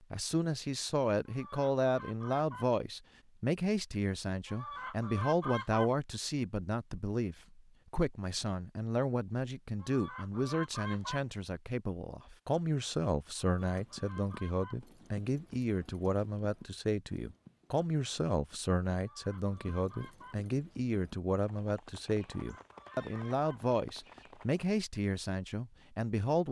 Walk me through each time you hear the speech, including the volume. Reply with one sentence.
The speech can be heard from 0.1 to 26.4 s, at a steady volume.